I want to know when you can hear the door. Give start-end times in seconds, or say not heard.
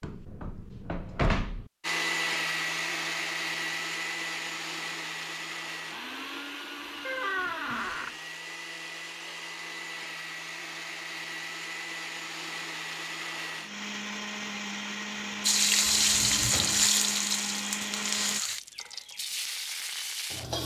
0.0-1.7, 7.0-8.2, 15.8-16.9.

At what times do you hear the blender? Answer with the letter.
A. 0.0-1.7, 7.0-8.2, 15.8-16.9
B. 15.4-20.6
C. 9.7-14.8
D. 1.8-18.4
D.